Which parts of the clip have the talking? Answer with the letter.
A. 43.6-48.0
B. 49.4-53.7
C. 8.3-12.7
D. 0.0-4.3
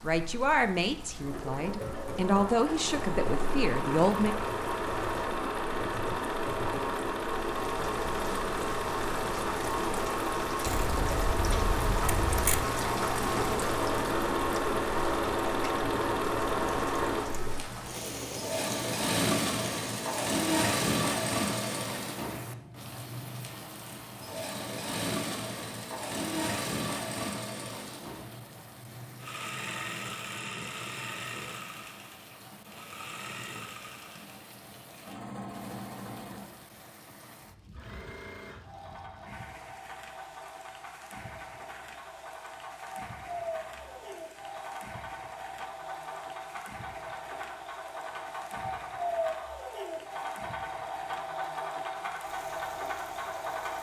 D.